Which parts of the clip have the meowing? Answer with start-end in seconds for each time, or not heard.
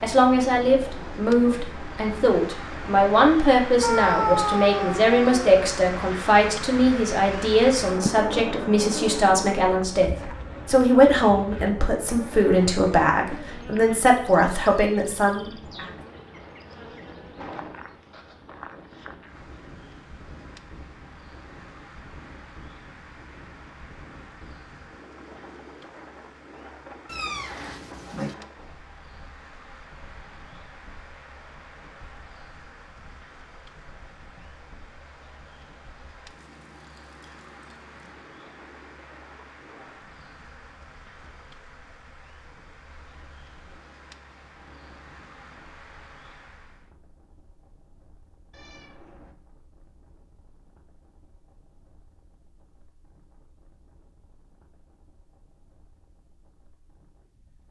3.8-5.5, 27.1-28.4, 48.5-49.4.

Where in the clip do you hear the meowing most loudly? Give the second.
4 s.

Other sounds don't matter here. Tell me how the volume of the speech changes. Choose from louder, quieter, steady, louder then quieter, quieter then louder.
steady.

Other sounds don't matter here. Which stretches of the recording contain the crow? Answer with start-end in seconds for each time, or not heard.
not heard.